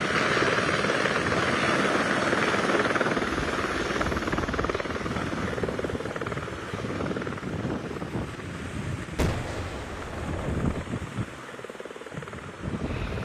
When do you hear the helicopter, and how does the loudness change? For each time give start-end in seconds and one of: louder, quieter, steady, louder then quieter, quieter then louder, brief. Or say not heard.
0.0-13.2 quieter.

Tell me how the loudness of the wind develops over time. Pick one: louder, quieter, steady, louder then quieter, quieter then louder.
steady.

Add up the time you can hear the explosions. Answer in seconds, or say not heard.
2 s.